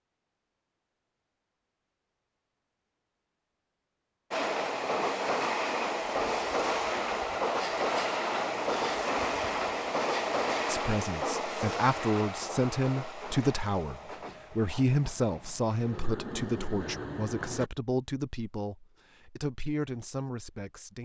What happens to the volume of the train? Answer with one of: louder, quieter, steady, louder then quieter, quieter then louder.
quieter.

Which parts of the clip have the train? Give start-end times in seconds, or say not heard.
4.3-17.7.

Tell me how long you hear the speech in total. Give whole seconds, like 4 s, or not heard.
10 s.